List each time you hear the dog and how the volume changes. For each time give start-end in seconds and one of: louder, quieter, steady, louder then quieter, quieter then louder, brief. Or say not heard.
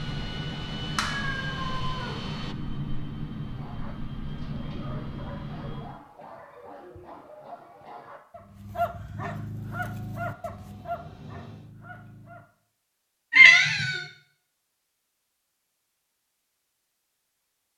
3.5-12.4 louder then quieter.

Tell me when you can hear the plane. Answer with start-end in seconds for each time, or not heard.
0.0-6.0, 9.5-11.7.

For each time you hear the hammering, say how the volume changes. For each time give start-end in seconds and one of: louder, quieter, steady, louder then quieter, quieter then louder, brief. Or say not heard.
not heard.